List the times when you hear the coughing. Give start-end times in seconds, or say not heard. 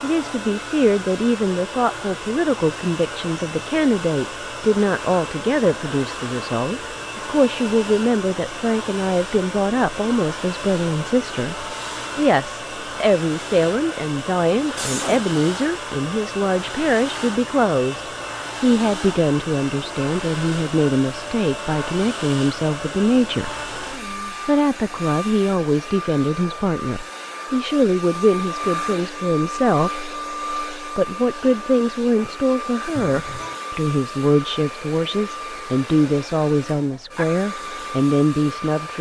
14.8-15.3, 33.0-33.6.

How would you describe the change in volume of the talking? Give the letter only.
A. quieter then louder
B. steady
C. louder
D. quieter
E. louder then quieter
B.